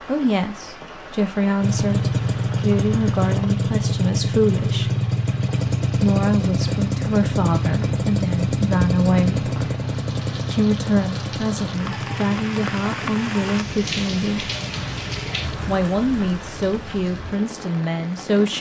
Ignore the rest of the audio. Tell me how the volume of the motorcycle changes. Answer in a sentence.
The volume of the motorcycle goes down.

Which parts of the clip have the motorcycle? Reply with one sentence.
The motorcycle can be heard from 1.6 to 15.8 s.